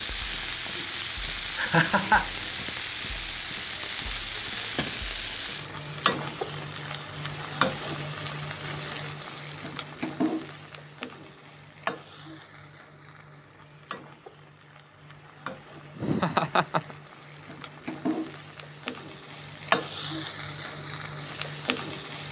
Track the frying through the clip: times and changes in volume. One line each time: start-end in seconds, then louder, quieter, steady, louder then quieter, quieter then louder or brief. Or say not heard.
0.0-22.2 quieter then louder.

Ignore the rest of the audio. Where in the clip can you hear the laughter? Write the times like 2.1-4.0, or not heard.
1.6-2.3, 15.9-16.9.